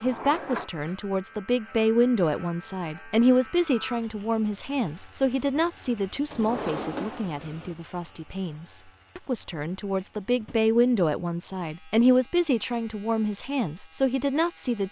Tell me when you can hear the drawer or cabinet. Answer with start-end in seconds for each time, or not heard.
0.0-0.7, 6.3-7.8, 10.3-10.8.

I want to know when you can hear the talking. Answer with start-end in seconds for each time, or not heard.
0.0-14.8.